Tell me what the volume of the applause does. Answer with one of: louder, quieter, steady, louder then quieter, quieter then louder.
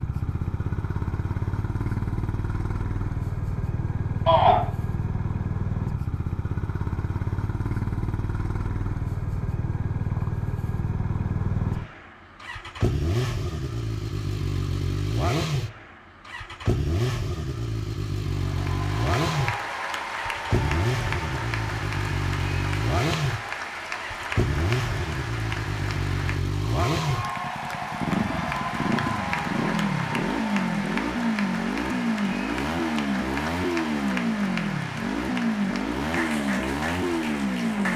steady.